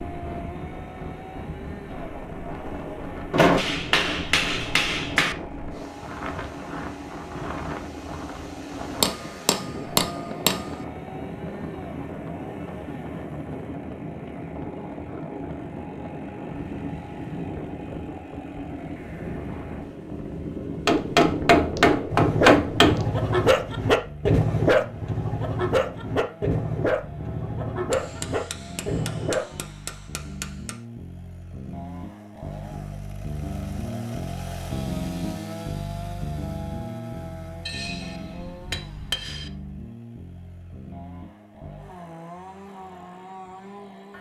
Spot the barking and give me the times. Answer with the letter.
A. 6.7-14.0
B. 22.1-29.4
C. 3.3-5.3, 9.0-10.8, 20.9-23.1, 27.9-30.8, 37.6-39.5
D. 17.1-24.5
B.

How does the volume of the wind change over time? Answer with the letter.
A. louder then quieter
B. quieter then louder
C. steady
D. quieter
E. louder
C.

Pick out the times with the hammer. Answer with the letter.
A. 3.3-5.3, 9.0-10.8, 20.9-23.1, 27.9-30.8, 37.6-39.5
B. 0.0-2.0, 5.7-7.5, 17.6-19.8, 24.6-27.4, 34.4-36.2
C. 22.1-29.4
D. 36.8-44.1
A.